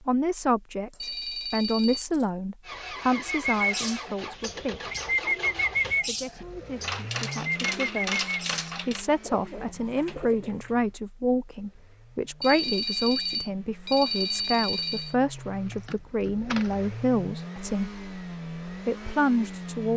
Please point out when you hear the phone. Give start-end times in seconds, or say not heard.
1.0-2.0, 12.4-15.2.